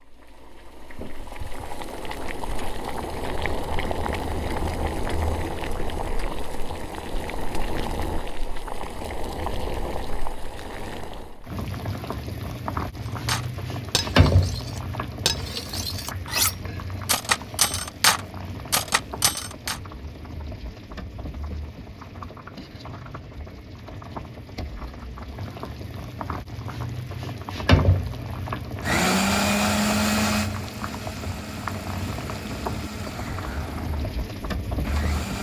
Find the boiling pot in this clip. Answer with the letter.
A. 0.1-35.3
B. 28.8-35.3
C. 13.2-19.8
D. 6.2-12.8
A.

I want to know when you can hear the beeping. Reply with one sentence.
You can't hear the beeping here.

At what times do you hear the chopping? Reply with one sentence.
The chopping can't be heard in this clip.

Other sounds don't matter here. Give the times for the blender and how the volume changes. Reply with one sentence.
You can hear the blender from 28.8 to 35.3 s, getting quieter.